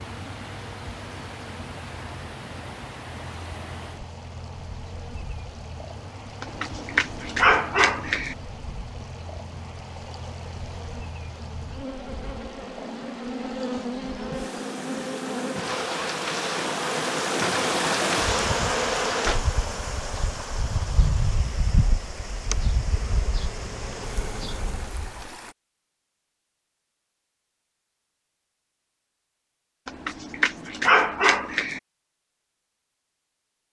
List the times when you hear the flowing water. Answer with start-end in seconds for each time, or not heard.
0.0-25.6.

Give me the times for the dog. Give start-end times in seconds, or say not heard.
6.4-8.3, 29.9-31.8.